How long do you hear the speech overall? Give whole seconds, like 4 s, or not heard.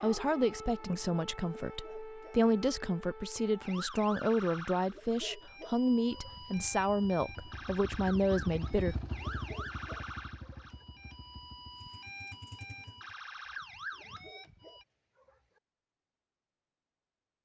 9 s.